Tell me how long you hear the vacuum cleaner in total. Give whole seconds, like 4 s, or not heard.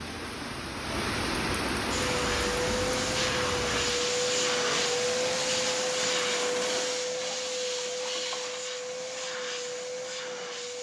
9 s.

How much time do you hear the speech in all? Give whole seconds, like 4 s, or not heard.
not heard.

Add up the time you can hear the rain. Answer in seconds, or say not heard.
7 s.